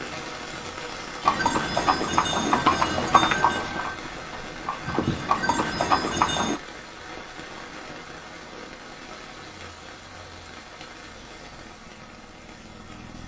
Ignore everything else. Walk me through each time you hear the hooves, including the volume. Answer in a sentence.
The hooves can be heard from 1.2 to 6.6 s, getting quieter then louder.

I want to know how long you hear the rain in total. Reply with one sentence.
You can hear the rain for 13 seconds altogether.